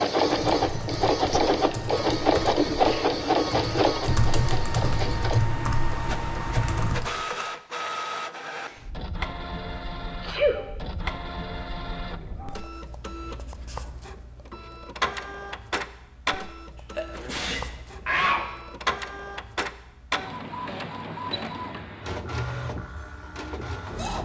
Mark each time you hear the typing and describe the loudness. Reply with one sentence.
You can hear the typing from 0.2 to 7.1 s, getting louder.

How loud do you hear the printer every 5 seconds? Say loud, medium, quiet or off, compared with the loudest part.
loud, medium, quiet, medium, medium.